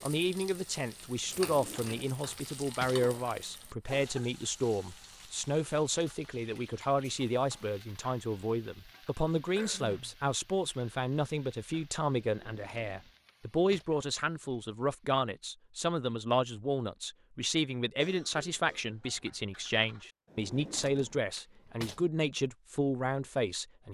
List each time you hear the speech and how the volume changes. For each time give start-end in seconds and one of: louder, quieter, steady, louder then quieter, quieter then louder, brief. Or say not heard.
0.0-23.9 steady.